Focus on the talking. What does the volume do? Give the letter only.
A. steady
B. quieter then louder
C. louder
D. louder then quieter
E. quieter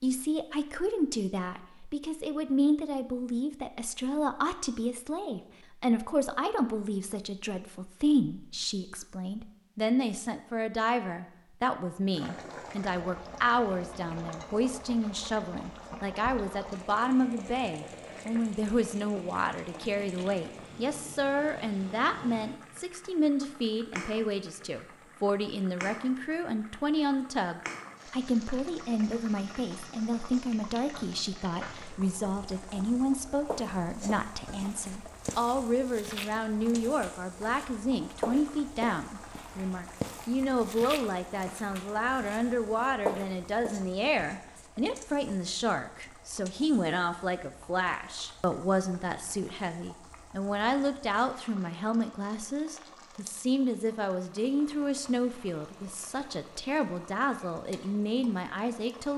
A.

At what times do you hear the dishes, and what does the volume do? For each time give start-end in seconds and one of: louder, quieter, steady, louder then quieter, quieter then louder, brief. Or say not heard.
not heard.